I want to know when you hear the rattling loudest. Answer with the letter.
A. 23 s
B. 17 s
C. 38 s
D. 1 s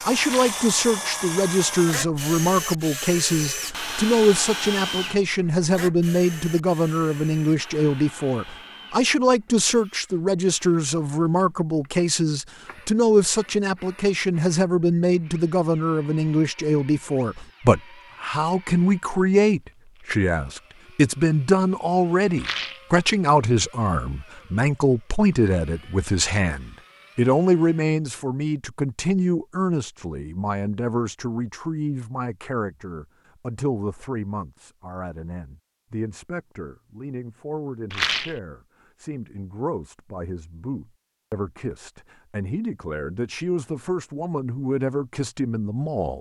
C.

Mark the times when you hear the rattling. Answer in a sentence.
You can hear the rattling from 0.2 to 0.7 s, from 22.4 to 22.9 s and from 37.9 to 38.4 s.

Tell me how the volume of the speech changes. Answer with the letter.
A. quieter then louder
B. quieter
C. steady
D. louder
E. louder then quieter
B.